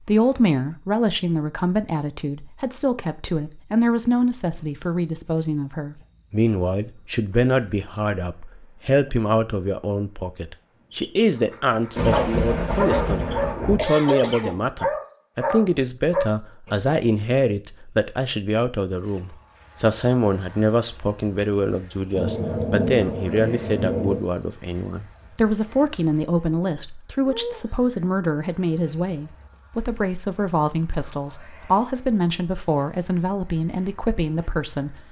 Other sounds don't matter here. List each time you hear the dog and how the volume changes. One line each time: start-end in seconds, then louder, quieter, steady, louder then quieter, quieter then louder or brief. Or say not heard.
11.2-16.9 steady.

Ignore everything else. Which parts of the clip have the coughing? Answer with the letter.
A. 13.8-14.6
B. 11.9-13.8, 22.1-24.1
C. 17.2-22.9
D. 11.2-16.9
A.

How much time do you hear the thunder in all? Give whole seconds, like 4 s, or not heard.
4 s.